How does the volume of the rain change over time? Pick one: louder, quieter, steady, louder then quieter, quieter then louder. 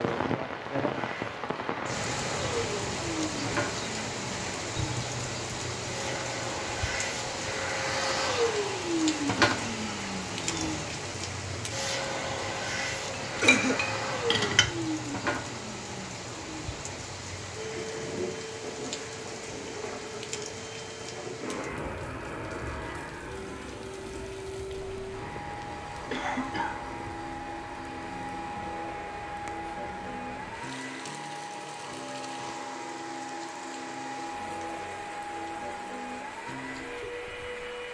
quieter.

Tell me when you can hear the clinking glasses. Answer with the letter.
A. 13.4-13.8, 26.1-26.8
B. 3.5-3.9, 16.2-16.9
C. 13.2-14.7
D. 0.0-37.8
C.